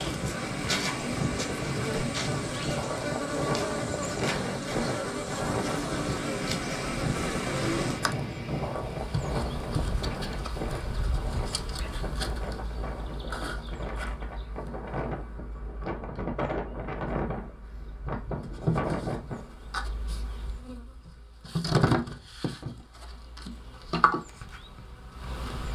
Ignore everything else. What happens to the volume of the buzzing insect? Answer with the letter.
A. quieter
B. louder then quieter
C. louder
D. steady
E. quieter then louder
E.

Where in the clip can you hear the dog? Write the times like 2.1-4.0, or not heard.
not heard.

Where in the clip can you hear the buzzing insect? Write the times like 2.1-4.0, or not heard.
0.0-25.7.